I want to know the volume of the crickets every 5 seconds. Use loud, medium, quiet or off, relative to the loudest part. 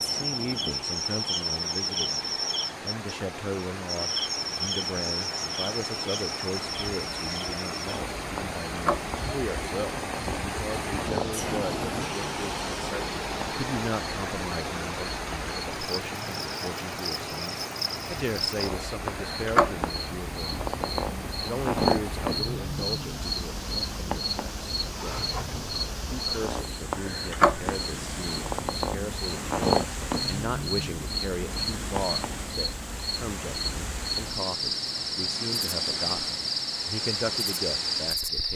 loud, medium, medium, loud, loud, loud, loud, loud.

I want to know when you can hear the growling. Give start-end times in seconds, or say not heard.
25.1-25.9.